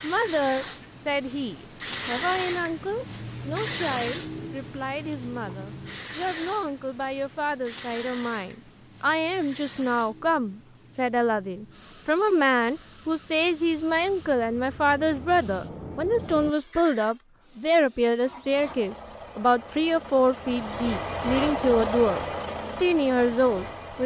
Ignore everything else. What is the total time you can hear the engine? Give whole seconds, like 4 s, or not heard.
6 s.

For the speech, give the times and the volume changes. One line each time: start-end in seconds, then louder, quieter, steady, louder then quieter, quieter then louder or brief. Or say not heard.
0.0-24.0 louder.